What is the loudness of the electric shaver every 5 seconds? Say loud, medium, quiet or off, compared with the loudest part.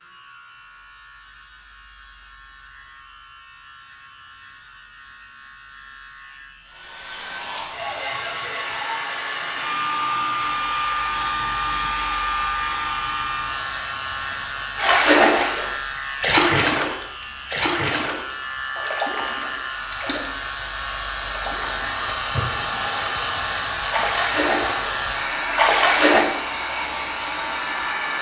quiet, medium, loud, loud, loud, loud.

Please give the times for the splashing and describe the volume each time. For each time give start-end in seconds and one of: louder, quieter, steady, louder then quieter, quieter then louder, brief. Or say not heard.
14.8-20.4 quieter
21.2-26.2 louder.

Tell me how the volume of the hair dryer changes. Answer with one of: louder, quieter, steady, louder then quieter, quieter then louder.
quieter then louder.